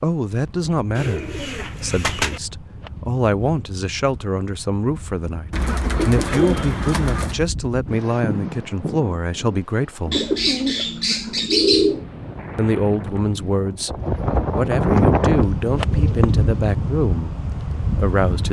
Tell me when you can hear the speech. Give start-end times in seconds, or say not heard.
0.0-10.2, 12.6-18.4.